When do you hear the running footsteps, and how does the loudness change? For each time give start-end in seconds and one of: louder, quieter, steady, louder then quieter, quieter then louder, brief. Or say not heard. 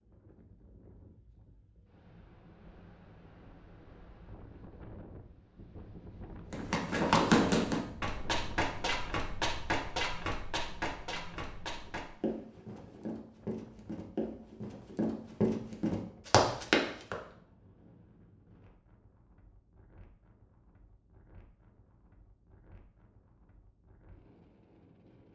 6.5-17.1 quieter then louder.